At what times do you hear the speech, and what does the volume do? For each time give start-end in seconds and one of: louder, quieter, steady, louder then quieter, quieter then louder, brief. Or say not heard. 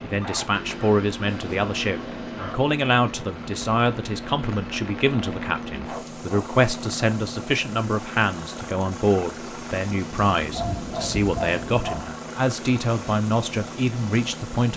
0.0-14.7 steady.